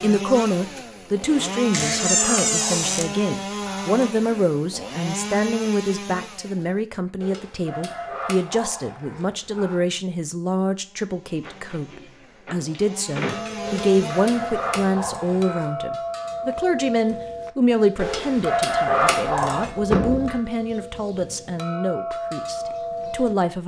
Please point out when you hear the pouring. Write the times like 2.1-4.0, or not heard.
not heard.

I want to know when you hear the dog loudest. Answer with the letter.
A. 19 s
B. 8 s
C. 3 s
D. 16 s
A.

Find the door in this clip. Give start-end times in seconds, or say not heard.
1.7-3.1, 11.4-13.4, 19.0-20.4.